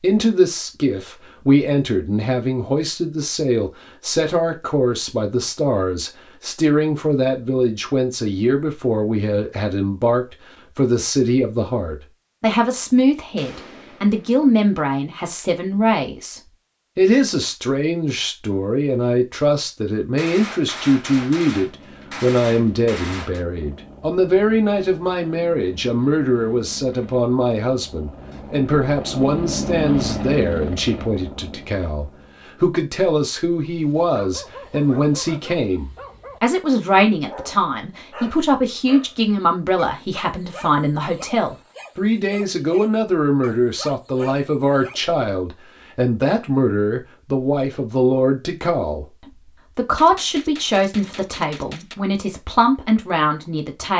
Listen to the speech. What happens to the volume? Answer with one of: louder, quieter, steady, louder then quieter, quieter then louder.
steady.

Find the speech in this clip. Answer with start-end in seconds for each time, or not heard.
0.0-53.9.